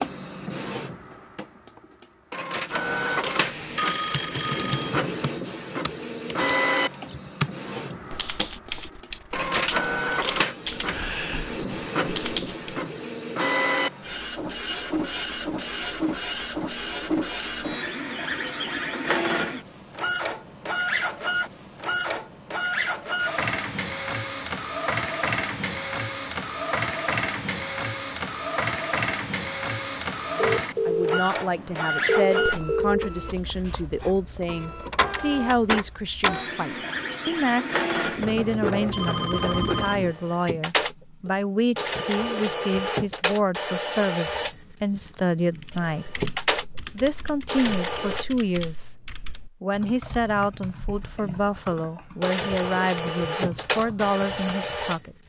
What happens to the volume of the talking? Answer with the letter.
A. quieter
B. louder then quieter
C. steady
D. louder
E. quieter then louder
C.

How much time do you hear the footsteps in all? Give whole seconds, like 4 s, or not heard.
not heard.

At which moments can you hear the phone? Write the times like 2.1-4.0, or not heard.
2.9-5.0, 30.4-33.1, 38.9-40.0.